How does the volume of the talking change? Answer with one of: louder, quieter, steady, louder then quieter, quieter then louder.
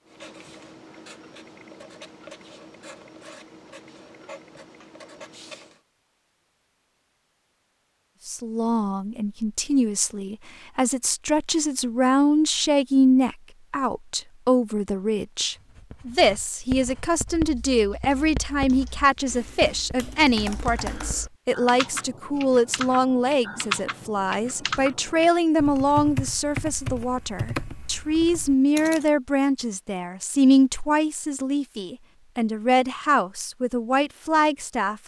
steady.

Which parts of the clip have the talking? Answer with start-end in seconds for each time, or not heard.
8.2-35.0.